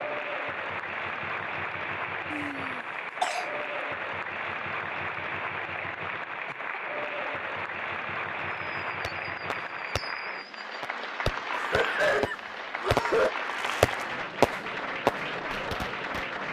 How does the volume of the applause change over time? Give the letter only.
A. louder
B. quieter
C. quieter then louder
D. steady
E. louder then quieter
D.